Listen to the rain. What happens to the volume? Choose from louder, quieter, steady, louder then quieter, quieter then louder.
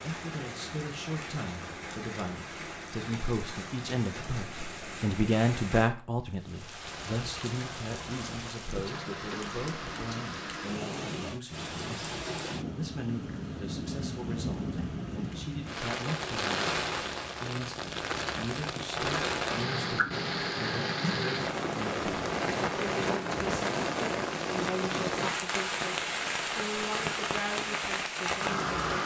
louder.